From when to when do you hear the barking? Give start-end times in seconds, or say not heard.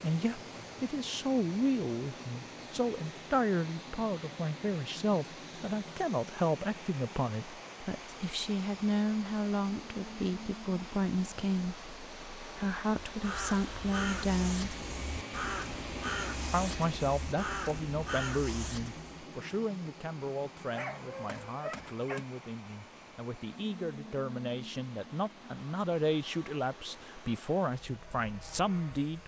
20.7-22.2.